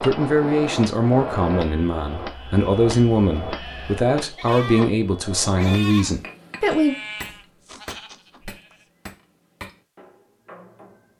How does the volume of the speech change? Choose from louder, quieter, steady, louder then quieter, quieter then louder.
steady.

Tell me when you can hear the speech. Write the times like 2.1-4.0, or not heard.
0.0-7.0.